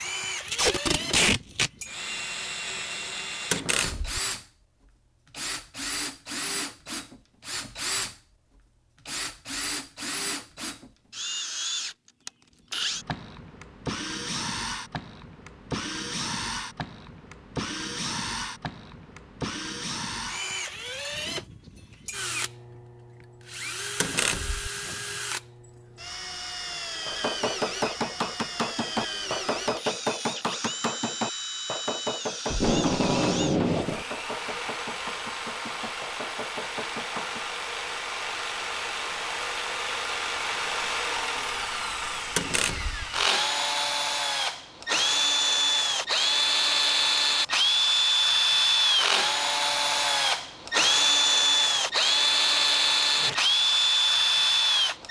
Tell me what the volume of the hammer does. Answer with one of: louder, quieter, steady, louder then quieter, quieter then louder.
quieter.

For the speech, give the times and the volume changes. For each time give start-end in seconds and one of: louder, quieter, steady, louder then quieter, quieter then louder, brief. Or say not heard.
not heard.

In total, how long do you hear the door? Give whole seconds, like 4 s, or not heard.
2 s.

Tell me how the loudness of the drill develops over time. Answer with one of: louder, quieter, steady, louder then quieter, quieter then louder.
louder.